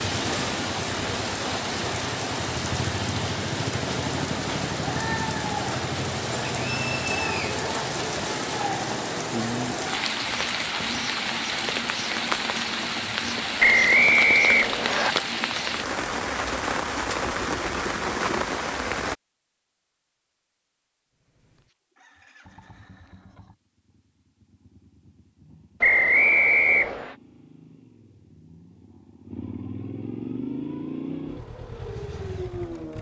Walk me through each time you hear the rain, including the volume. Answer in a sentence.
The rain can be heard from 0.0 to 19.1 s, at a steady volume.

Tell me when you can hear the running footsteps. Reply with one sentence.
You can't hear the running footsteps here.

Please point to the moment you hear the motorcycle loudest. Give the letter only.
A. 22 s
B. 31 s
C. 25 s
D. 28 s
B.